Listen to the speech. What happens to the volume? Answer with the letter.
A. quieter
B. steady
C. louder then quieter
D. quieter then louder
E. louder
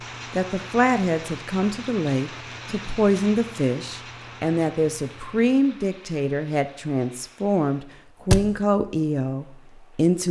B.